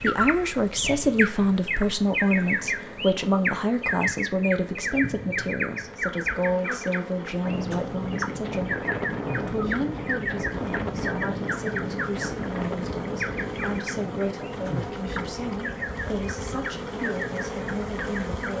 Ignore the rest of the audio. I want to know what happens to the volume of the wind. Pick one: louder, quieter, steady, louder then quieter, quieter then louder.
quieter.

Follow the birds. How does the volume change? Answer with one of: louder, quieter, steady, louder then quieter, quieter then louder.
quieter.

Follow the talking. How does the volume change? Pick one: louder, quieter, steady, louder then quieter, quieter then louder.
quieter.